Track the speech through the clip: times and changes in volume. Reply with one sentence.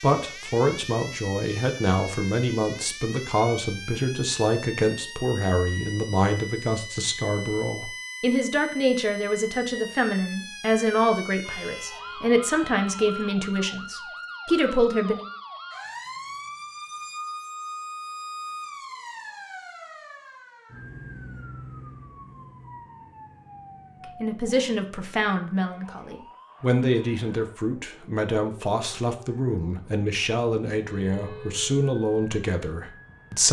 You can hear the speech from 0.0 to 15.2 s, at a steady volume; and from 24.1 to 33.4 s, at a steady volume.